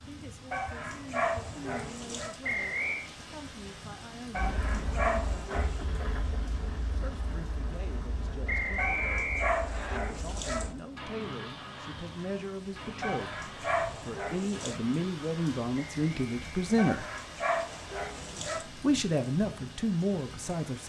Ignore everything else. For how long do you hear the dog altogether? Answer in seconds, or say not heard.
9 s.